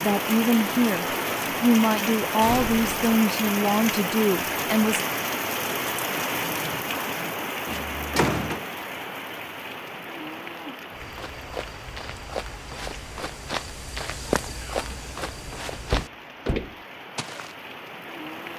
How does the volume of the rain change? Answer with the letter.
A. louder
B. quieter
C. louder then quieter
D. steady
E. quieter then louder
B.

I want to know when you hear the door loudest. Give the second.
8 s.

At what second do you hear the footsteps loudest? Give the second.
14 s.